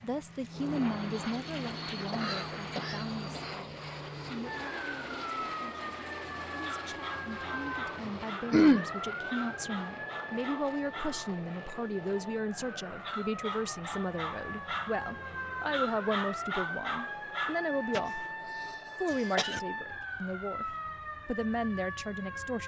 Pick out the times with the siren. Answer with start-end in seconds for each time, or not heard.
4.5-22.6.